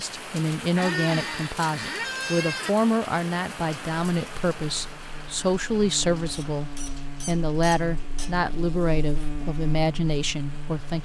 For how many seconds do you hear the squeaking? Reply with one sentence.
The squeaking can be heard for 4 seconds in total.